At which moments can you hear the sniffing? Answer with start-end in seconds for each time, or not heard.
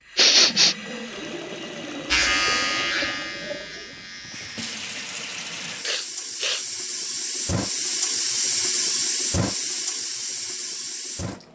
0.1-0.8, 5.8-6.7.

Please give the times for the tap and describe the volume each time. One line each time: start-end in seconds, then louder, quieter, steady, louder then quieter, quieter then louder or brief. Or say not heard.
0.0-11.5 louder.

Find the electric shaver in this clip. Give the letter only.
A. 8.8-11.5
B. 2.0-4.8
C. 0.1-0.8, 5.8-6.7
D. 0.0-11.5
B.